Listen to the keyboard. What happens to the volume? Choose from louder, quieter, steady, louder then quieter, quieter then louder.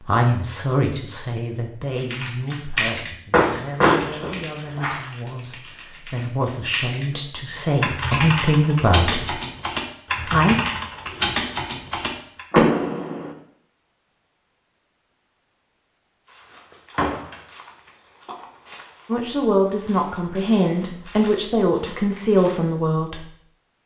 quieter then louder.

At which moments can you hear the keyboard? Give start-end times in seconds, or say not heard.
1.9-12.4.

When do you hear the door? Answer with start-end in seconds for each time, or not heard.
3.3-5.1, 12.5-13.3, 16.9-17.4.